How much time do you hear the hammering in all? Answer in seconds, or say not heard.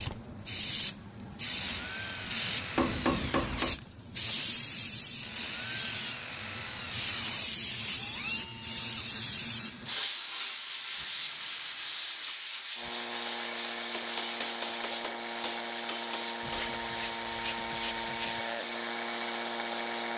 4 s.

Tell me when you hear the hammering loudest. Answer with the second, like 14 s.
3 s.